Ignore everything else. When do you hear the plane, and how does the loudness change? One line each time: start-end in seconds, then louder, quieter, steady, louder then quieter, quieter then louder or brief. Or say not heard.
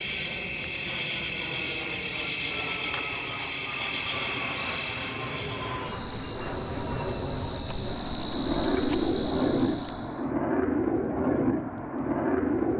0.0-12.7 louder.